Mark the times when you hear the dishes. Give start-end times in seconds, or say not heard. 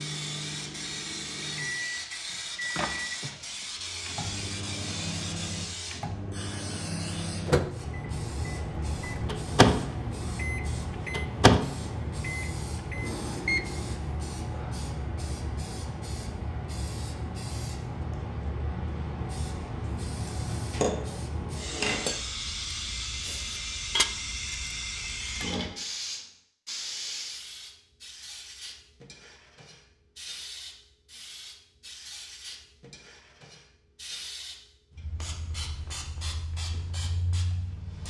20.2-25.4.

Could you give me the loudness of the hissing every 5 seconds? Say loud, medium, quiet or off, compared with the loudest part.
loud, loud, loud, loud, loud, loud, medium, medium.